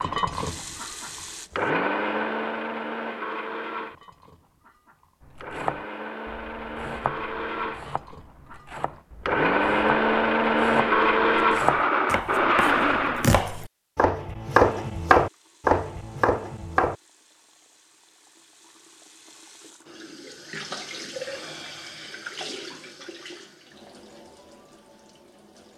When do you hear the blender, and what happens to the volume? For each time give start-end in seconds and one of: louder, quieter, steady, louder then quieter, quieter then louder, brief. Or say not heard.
0.0-13.4 quieter then louder.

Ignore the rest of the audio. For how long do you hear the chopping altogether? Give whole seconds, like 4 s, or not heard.
12 s.